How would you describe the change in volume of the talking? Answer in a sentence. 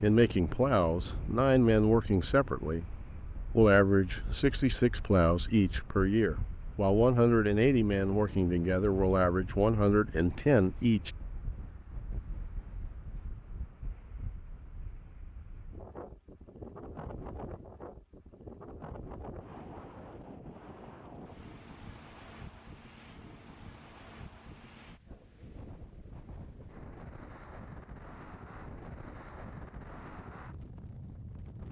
The loudness of the talking stays about the same.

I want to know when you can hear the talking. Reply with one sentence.
The talking can be heard from 0.0 to 11.1 s.